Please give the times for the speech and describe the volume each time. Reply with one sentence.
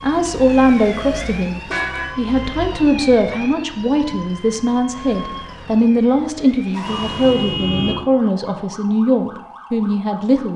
You can hear the speech from 0.0 to 10.5 s, at a steady volume.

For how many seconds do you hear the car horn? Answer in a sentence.
You can hear the car horn for 2 seconds altogether.